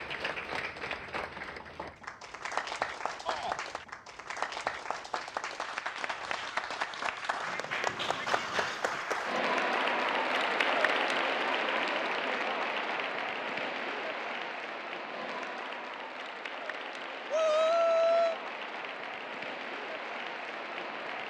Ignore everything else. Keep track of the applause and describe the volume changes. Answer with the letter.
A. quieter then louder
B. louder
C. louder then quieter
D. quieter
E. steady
C.